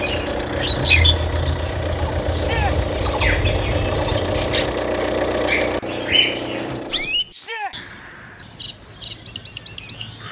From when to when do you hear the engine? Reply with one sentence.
You can hear the engine from 0.0 to 7.2 s.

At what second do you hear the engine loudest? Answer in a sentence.
The loudest moment of the engine is at 5 seconds.